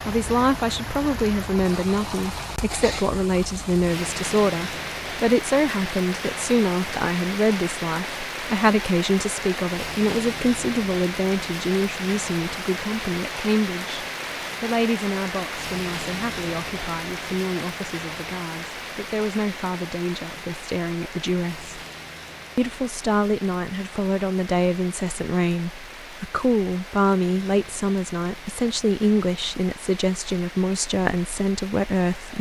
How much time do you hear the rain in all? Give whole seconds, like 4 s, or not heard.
32 s.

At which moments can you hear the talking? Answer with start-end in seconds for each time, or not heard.
0.1-21.8, 22.6-32.3.